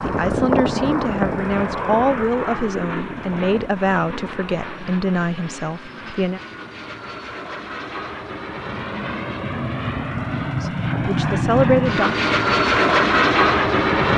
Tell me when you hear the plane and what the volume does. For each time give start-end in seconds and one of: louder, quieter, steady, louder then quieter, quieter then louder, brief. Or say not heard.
0.0-14.1 quieter then louder.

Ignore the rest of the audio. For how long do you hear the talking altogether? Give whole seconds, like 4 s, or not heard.
8 s.